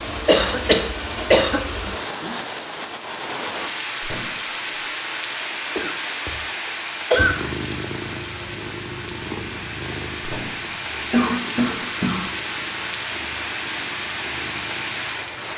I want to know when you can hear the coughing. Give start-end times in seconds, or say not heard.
0.2-1.6, 5.8-6.4, 7.1-7.8, 11.1-12.3.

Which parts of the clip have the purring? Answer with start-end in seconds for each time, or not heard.
7.2-15.5.